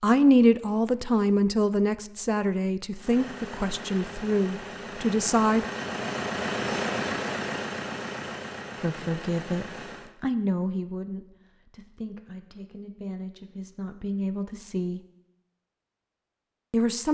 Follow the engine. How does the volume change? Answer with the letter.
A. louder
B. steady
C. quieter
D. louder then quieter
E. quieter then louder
D.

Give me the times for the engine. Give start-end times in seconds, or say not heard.
3.0-10.2.